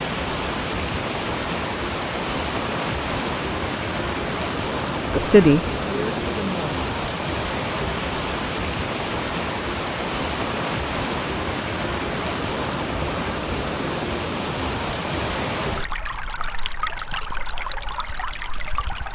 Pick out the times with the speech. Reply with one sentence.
You can hear the speech from 5.1 to 6.8 s.